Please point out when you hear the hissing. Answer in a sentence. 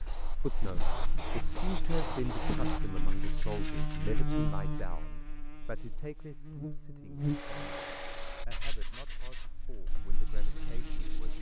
You can hear the hissing from 0.0 to 2.8 s.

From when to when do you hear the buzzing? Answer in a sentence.
The buzzing can be heard from 0.1 to 11.3 s.